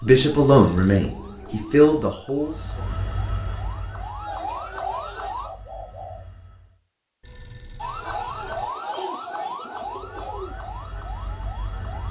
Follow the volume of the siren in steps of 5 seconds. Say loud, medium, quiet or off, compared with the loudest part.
medium, loud, medium.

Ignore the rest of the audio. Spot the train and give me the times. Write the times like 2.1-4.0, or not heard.
2.4-6.8, 9.8-12.0.